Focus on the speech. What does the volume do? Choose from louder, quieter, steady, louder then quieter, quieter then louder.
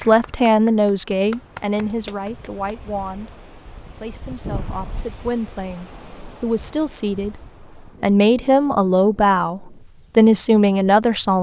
quieter then louder.